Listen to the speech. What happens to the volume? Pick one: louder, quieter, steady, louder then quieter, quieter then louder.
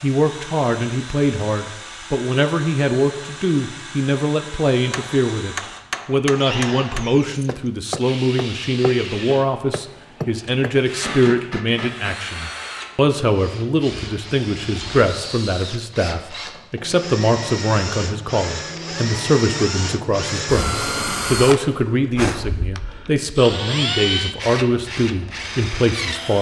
steady.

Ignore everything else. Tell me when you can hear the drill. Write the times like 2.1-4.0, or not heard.
0.0-26.3.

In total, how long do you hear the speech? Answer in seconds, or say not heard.
26 s.